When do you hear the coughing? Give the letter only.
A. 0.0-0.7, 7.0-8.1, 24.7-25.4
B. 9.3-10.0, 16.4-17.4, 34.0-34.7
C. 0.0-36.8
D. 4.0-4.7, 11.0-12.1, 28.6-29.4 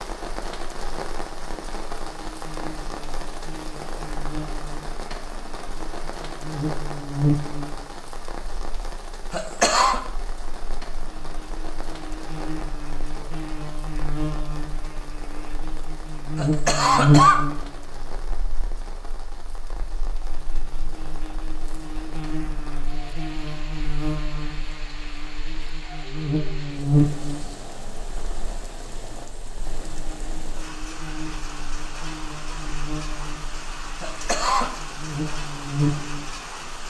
B.